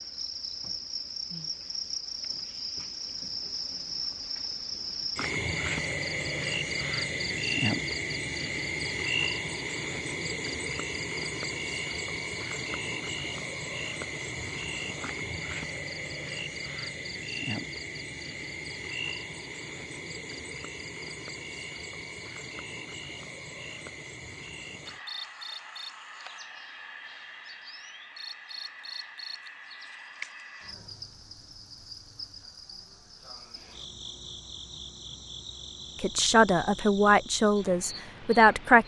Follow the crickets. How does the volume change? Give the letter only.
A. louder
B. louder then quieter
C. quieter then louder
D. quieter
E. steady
D.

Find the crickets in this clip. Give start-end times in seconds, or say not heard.
0.0-38.8.